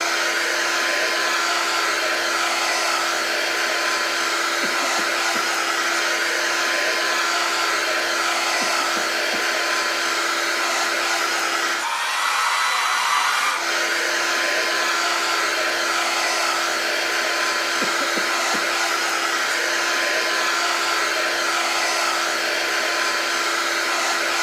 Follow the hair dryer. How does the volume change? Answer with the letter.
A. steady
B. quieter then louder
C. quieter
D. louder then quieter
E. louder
A.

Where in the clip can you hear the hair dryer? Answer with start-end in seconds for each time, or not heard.
0.0-24.3.